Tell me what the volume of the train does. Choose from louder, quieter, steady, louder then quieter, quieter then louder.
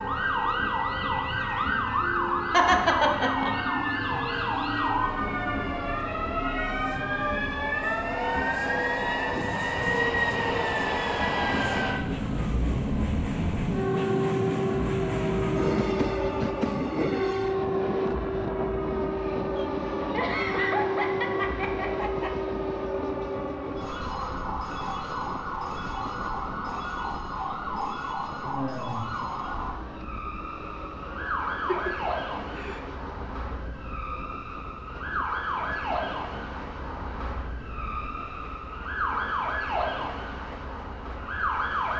louder then quieter.